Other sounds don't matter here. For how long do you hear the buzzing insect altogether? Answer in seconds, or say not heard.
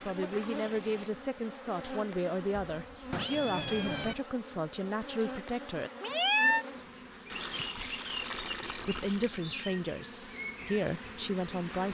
12 s.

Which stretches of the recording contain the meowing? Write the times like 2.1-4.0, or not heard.
2.8-4.2, 6.0-6.7.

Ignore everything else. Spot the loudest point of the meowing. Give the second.
6 s.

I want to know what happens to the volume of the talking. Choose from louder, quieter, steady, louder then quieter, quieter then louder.
steady.